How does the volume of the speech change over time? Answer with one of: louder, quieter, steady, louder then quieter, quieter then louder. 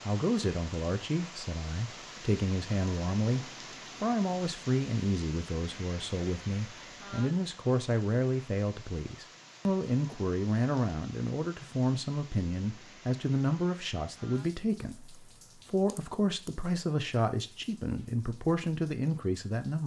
steady.